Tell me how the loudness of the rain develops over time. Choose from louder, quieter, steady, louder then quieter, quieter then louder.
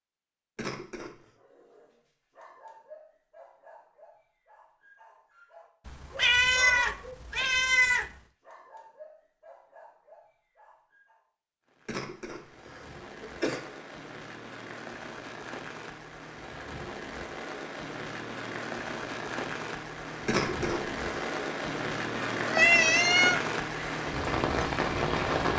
louder.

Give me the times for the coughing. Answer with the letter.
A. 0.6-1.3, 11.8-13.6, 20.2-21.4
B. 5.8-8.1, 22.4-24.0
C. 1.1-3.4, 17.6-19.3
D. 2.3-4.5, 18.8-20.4
A.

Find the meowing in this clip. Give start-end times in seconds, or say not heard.
5.8-8.1, 22.4-24.0.